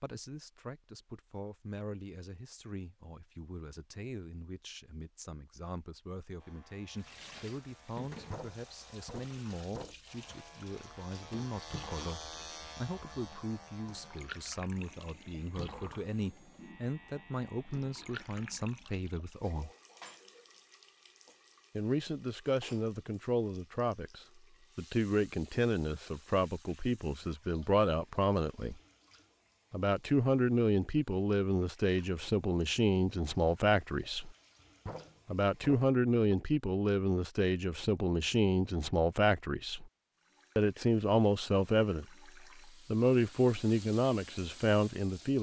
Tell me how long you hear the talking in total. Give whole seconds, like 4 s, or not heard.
40 s.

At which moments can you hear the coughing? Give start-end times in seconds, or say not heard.
not heard.